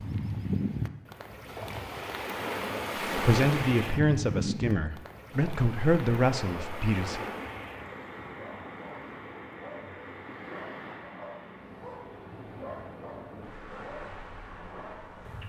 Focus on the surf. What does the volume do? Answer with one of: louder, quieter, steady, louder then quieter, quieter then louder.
quieter.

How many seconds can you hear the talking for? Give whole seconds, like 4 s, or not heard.
4 s.